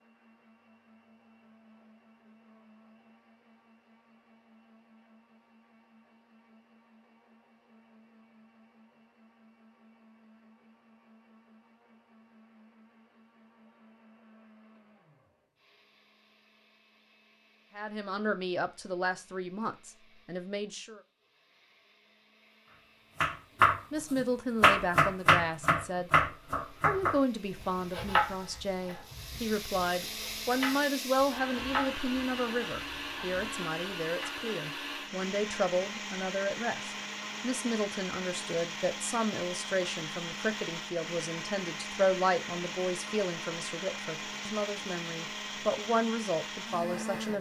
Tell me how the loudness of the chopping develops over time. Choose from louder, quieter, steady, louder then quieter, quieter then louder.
quieter.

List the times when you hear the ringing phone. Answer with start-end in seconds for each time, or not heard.
not heard.